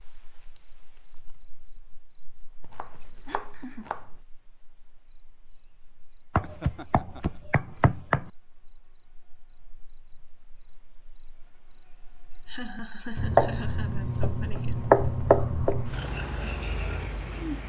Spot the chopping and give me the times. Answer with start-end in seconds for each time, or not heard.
2.6-4.0, 6.3-8.3, 13.2-16.1.